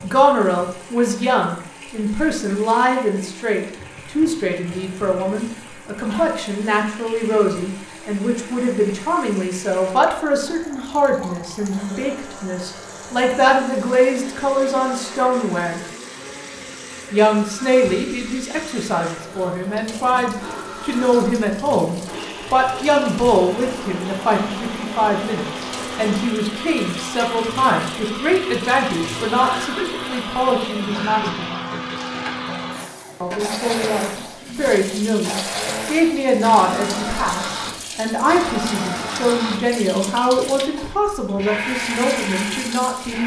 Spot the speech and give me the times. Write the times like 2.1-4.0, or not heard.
0.0-15.8, 17.1-31.4, 33.2-43.2.